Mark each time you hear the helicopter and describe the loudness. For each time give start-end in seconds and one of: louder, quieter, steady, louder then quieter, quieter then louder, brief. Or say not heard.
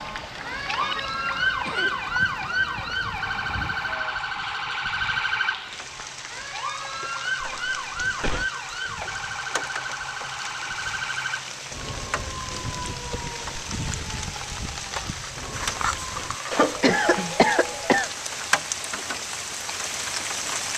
not heard.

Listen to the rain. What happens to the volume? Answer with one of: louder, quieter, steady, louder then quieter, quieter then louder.
louder.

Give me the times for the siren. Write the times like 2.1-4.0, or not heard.
0.0-16.4.